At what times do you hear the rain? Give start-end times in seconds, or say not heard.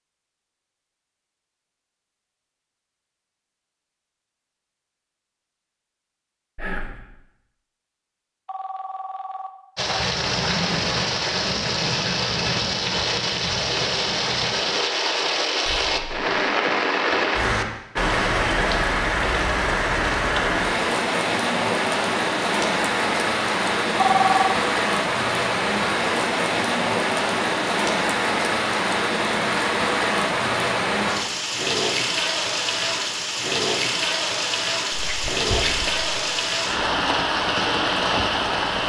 9.8-38.8.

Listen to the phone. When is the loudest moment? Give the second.
24 s.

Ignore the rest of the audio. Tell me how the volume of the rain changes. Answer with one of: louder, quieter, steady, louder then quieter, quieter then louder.
steady.